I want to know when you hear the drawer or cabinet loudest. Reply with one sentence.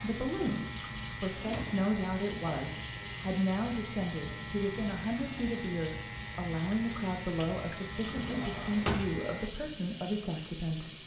The volume of the drawer or cabinet peaks at 9 seconds.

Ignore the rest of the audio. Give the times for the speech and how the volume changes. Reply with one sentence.
You can hear the speech from 0.0 to 11.0 s, at a steady volume.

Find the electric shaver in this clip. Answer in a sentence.
You can hear the electric shaver from 0.0 to 9.6 s.